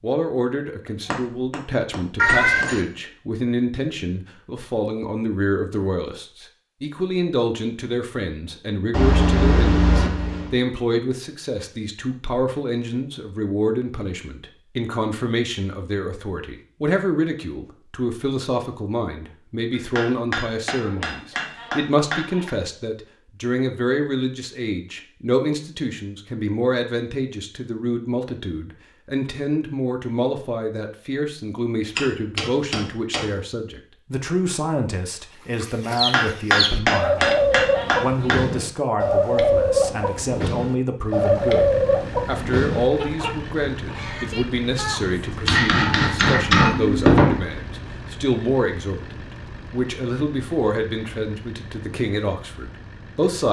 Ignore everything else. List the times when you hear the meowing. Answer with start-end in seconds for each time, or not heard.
2.1-2.8.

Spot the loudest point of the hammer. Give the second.
47 s.